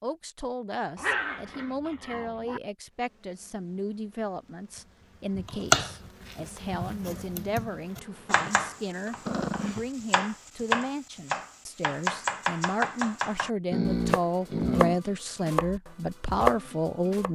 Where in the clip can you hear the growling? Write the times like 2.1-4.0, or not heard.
0.9-2.6, 9.2-9.8, 13.7-15.0.